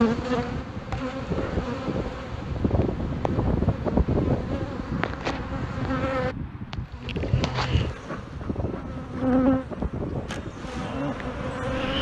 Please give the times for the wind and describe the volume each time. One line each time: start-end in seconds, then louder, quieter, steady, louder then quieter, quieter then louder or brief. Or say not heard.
0.0-11.9 louder then quieter.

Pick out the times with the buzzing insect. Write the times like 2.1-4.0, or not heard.
0.0-11.9.